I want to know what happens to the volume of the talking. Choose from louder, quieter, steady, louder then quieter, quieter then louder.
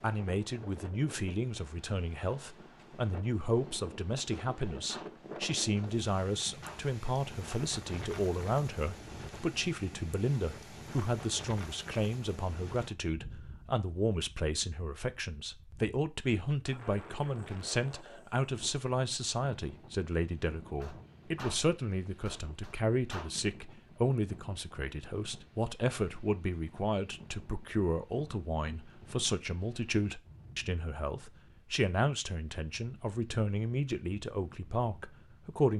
steady.